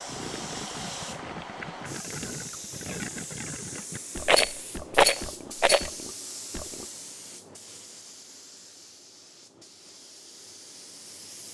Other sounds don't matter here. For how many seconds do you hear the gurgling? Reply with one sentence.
The gurgling can be heard for 7 seconds in total.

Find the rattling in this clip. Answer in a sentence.
The rattling can be heard from 4.2 to 5.9 s.